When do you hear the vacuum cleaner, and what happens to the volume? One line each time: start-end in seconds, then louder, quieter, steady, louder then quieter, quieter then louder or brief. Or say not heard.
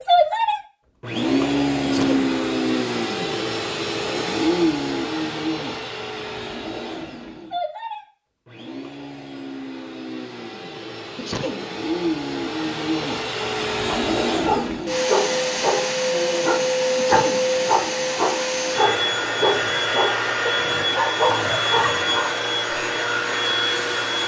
0.0-24.2 quieter then louder.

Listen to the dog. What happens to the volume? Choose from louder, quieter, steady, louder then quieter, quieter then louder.
steady.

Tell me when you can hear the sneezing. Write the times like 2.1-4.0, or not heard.
1.8-2.4, 11.2-11.7, 16.9-17.4.